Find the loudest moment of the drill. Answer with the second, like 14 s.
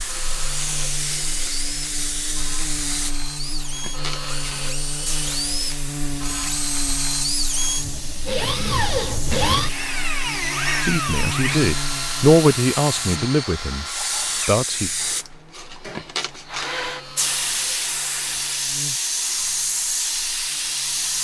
9 s.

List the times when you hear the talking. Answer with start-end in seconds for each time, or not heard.
10.8-13.8, 14.4-14.9.